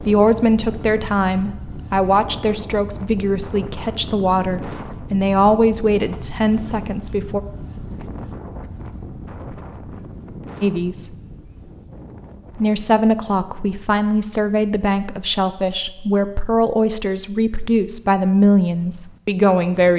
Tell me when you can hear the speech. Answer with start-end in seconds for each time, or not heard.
0.0-7.4, 10.6-11.2, 12.6-19.9.